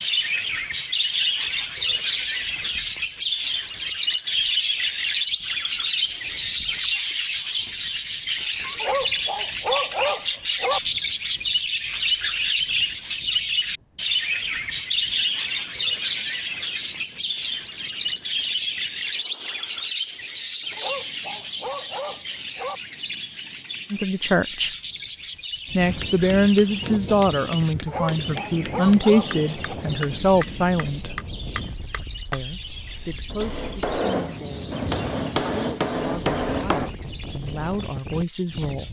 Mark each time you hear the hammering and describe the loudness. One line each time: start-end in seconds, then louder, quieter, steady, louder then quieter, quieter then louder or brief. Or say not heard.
25.8-36.9 louder.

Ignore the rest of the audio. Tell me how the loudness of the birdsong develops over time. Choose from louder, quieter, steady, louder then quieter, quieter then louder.
quieter.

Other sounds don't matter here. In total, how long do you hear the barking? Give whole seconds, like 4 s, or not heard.
6 s.